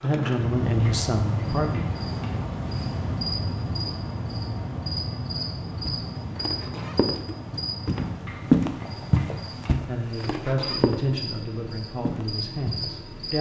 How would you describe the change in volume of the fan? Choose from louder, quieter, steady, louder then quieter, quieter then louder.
quieter.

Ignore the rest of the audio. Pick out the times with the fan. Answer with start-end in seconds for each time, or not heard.
0.0-13.3.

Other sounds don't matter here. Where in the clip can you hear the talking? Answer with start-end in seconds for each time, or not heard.
0.0-1.9, 9.8-13.3.